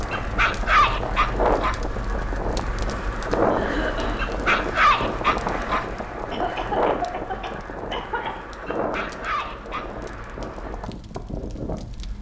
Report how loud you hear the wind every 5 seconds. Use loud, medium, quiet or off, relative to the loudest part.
loud, loud, medium.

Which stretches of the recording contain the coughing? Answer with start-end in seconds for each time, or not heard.
3.5-4.3, 6.3-8.3.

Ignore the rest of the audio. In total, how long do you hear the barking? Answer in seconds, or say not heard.
5 s.